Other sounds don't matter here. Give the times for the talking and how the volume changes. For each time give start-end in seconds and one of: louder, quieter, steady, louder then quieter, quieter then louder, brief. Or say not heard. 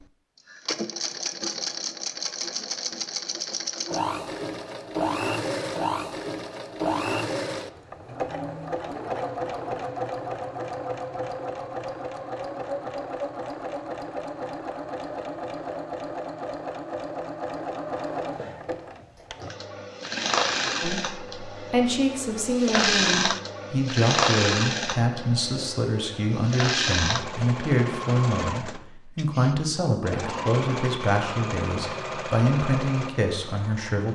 20.8-34.1 steady.